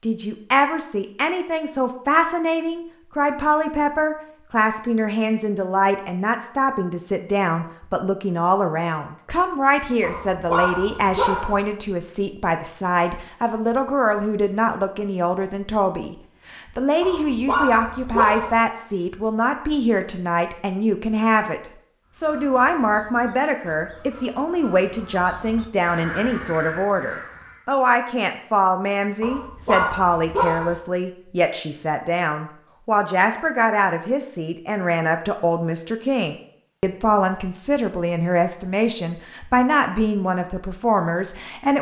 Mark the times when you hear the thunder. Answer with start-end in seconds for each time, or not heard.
not heard.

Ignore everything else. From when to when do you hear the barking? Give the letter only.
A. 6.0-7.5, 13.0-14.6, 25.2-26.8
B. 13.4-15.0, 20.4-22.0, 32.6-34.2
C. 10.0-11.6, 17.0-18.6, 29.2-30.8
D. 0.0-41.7
C.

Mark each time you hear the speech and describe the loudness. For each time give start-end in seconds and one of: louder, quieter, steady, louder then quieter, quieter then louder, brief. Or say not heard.
0.0-41.7 steady.